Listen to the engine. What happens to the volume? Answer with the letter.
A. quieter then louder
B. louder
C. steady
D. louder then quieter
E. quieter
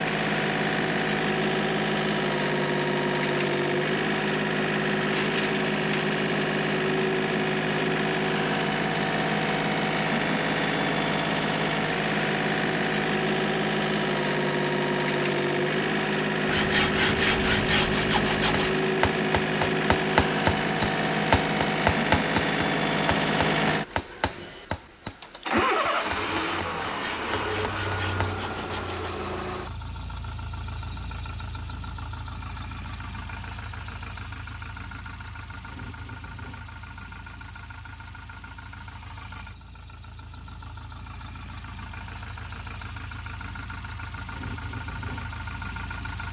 E.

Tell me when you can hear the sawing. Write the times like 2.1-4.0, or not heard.
16.4-18.8, 26.8-29.1.